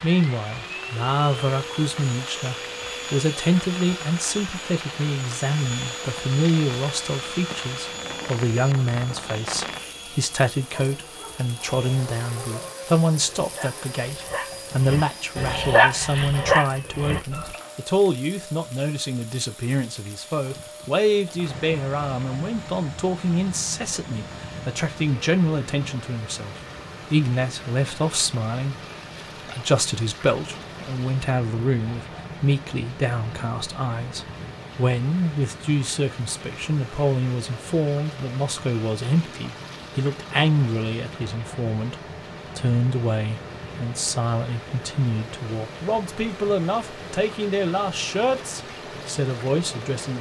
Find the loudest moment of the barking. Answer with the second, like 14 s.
16 s.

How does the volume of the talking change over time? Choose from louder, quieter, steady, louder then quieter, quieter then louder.
steady.